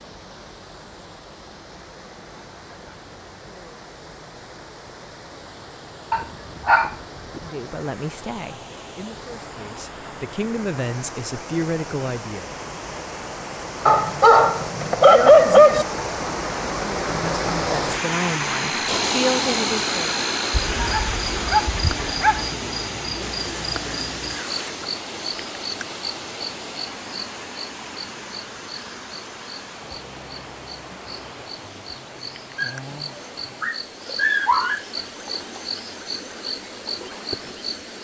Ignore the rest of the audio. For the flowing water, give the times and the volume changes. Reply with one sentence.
The flowing water can be heard from 0.0 to 37.7 s, getting louder then quieter.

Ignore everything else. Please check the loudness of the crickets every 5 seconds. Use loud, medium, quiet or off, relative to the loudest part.
off, off, off, off, loud, medium, medium, loud.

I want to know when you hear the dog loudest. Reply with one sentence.
The volume of the dog peaks at 15 seconds.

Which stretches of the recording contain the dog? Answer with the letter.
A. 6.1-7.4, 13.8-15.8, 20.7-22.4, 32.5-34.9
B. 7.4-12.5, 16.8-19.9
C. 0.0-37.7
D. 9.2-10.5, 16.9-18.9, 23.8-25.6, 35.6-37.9
A.